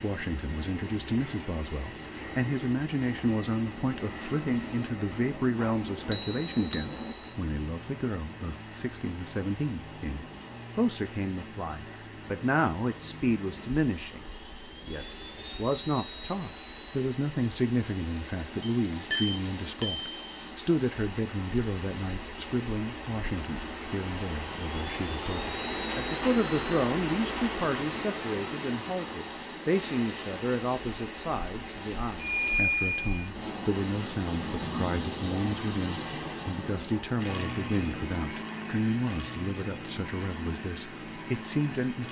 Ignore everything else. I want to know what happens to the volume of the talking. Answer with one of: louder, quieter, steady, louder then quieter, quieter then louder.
steady.